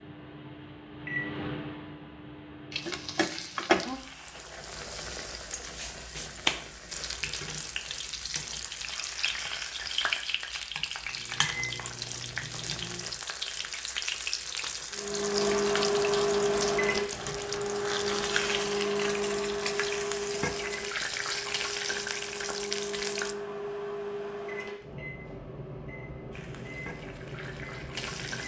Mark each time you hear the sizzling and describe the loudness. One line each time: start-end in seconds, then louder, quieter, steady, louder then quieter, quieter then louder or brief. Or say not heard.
2.7-23.4 steady
26.3-28.4 brief.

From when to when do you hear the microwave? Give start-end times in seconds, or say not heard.
0.0-3.6, 11.1-13.2, 14.9-28.4.